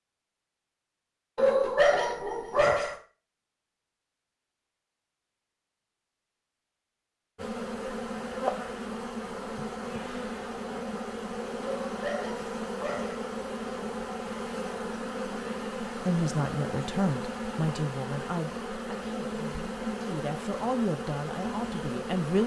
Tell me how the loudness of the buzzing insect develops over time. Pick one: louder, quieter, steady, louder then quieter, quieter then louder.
steady.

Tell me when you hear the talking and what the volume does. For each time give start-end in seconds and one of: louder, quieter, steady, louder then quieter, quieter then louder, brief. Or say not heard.
15.8-22.4 quieter then louder.